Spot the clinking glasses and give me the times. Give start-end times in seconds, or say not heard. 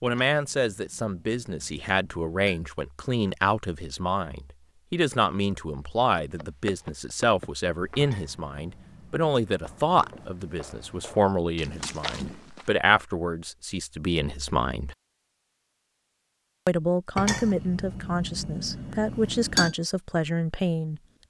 0.1-2.6, 8.0-10.3, 17.1-19.8.